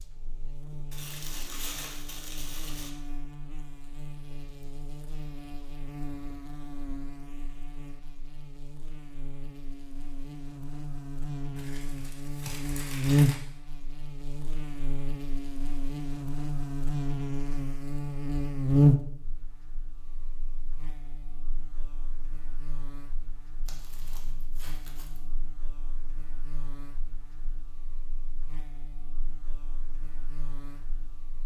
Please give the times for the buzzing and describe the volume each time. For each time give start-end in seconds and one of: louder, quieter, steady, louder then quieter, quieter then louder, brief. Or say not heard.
0.0-31.4 louder then quieter.